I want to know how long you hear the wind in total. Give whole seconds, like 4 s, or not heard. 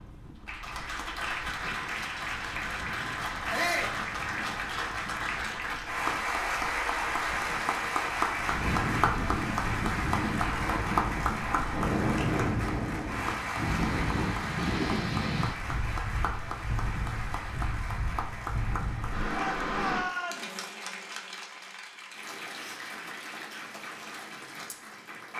20 s.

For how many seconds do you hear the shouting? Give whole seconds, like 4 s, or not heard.
2 s.